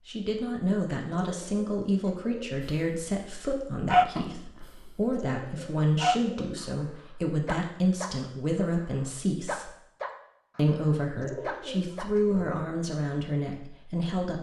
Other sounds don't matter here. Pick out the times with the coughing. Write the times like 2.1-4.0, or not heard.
not heard.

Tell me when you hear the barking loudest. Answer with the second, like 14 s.
4 s.